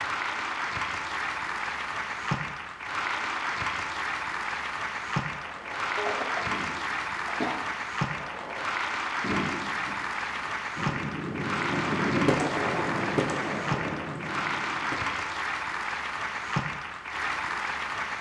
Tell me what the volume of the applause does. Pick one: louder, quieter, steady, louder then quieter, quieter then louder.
steady.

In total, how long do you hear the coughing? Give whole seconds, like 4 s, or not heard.
2 s.